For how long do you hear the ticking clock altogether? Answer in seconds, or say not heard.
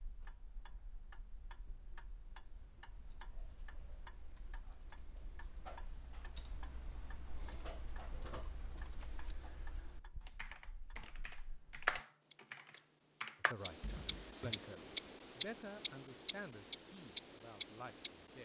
18 s.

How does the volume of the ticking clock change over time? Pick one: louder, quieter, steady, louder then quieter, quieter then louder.
louder.